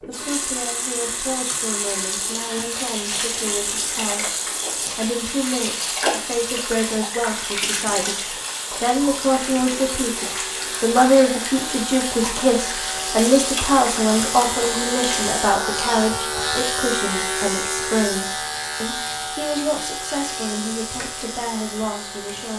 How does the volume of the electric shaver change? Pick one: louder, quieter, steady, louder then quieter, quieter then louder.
louder then quieter.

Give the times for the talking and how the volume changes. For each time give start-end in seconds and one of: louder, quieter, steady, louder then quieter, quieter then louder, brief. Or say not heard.
0.0-22.5 louder then quieter.